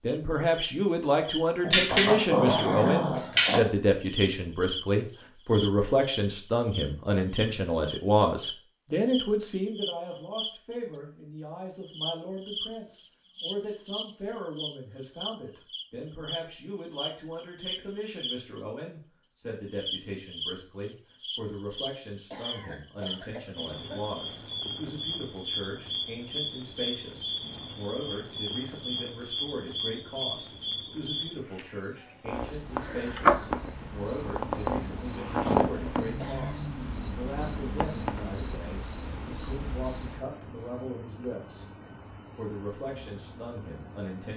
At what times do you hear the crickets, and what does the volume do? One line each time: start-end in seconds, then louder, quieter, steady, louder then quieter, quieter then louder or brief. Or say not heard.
0.0-44.3 steady.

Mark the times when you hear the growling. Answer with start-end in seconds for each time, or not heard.
1.6-3.6.